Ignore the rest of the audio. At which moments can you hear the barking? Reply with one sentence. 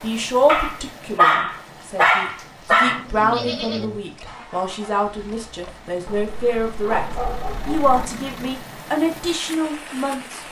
You can hear the barking from 0.5 to 3.0 s and from 6.0 to 8.1 s.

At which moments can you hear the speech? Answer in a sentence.
You can hear the speech from 0.0 to 10.4 s.